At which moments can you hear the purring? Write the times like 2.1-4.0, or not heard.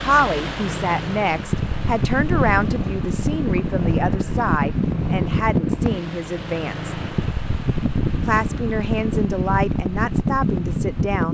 0.0-7.3.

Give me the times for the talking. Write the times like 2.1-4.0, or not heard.
0.0-7.0, 8.2-11.3.